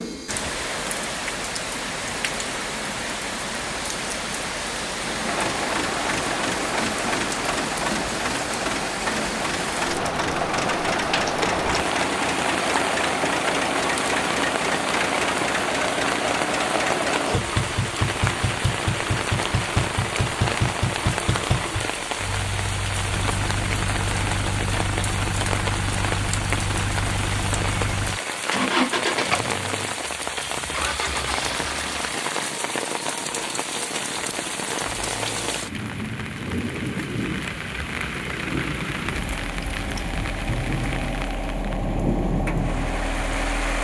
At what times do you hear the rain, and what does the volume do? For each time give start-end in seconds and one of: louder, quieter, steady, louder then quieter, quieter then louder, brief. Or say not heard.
0.0-43.7 steady.